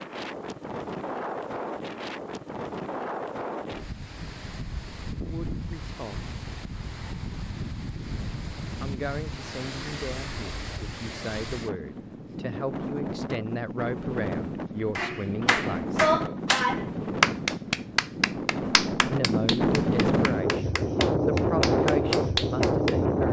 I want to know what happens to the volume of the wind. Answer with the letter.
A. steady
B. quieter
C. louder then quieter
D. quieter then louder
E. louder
E.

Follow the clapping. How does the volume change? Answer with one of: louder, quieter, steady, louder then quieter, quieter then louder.
quieter then louder.